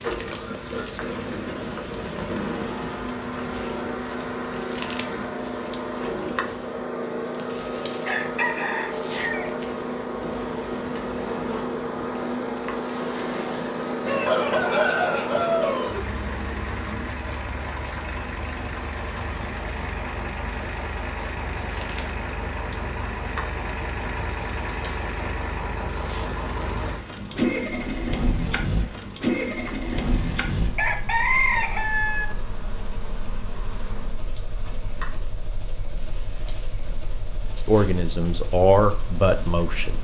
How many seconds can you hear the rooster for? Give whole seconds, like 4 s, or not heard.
5 s.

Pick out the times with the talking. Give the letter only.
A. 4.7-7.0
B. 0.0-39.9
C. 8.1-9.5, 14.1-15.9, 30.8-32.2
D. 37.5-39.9
D.